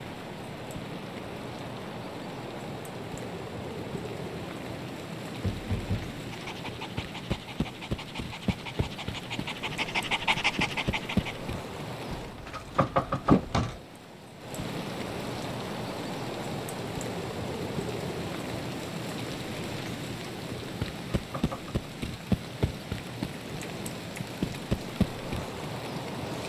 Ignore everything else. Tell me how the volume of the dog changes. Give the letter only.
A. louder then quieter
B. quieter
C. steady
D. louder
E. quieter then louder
D.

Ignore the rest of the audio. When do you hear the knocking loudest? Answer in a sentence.
The loudest moment of the knocking is at 13 seconds.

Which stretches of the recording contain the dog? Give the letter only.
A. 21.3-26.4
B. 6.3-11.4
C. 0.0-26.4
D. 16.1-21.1
B.